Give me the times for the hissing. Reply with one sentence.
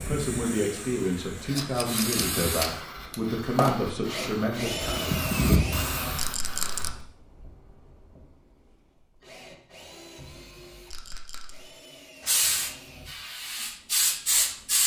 The hissing can be heard from 0.0 to 7.0 s and from 12.2 to 14.8 s.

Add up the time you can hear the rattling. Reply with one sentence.
You can hear the rattling for 2 seconds altogether.